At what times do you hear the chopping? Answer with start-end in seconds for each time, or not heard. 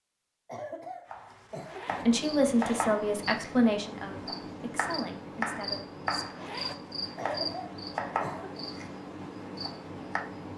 1.1-6.4, 7.0-10.2.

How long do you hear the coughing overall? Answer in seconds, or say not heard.
3 s.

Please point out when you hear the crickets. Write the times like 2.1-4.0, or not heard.
1.9-10.5.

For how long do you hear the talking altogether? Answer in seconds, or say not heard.
4 s.